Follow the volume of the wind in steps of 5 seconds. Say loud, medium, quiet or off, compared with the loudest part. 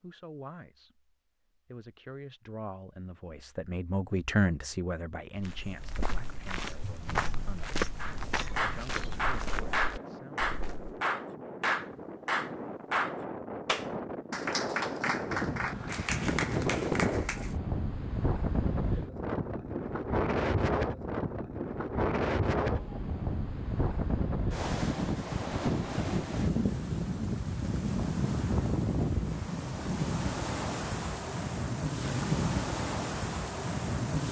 off, quiet, medium, loud, loud, loud, loud.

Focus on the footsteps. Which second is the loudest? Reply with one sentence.
The volume of the footsteps peaks at 8 seconds.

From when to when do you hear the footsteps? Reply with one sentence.
You can hear the footsteps from 5.4 to 10.9 s.